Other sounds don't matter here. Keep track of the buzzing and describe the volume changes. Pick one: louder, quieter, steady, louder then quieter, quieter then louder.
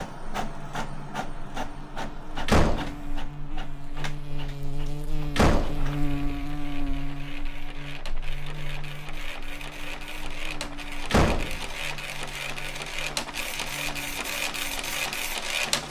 louder then quieter.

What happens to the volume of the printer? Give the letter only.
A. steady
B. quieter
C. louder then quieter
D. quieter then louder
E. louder
D.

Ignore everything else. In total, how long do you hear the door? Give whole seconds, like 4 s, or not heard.
2 s.